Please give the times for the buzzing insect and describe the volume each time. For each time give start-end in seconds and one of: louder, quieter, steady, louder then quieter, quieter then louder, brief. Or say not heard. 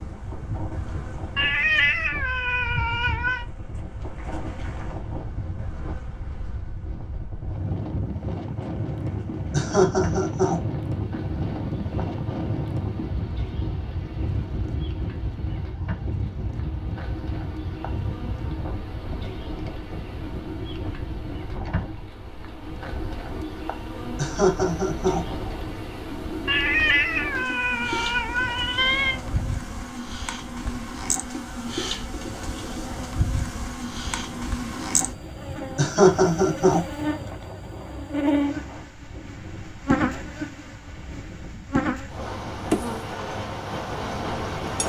0.0-44.8 louder.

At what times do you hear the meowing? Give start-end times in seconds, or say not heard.
1.4-3.5, 26.4-29.2.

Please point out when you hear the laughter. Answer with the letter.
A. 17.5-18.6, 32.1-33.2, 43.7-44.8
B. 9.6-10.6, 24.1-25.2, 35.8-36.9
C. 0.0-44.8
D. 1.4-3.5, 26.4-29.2
B.